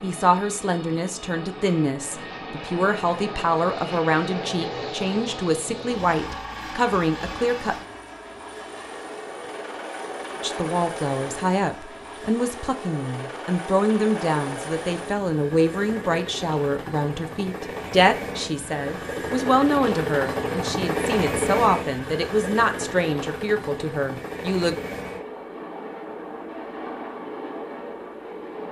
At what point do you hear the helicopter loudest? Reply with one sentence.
The volume of the helicopter peaks at 21 seconds.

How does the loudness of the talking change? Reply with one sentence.
The loudness of the talking stays about the same.